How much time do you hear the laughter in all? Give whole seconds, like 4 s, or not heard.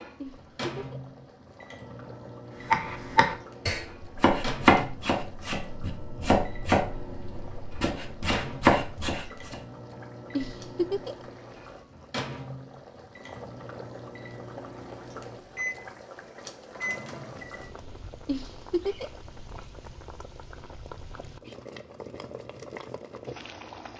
3 s.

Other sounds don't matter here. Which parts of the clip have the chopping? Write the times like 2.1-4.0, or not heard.
2.6-9.6.